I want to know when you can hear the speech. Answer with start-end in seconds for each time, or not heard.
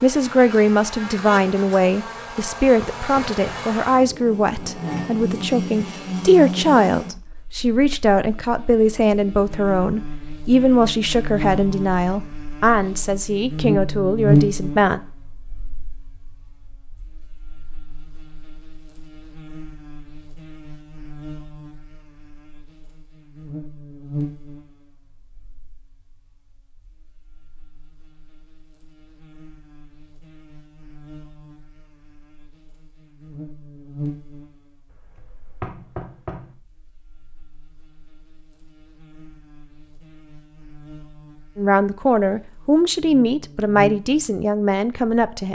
0.0-15.0, 41.5-45.5.